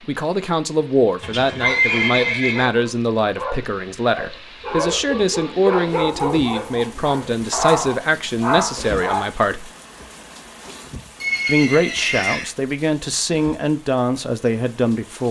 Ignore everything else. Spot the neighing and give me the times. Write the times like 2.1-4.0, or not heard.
1.2-2.7, 11.2-12.5.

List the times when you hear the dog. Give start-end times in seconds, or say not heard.
1.4-9.3.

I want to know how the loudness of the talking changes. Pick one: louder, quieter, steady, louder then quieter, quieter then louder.
steady.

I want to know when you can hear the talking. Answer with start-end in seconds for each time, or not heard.
0.1-9.7, 11.4-15.2.